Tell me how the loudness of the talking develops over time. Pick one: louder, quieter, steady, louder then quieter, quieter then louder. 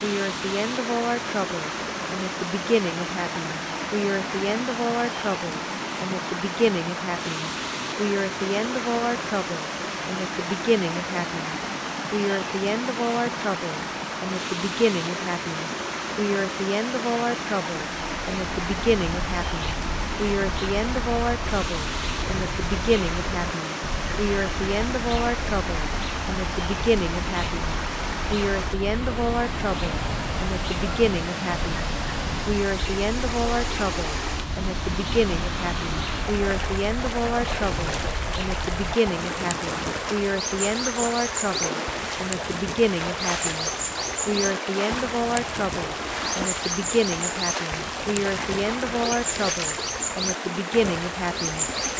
steady.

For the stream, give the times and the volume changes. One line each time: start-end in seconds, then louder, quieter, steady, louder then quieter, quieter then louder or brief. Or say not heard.
0.0-51.9 steady.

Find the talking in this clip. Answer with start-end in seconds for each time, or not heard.
0.0-51.6.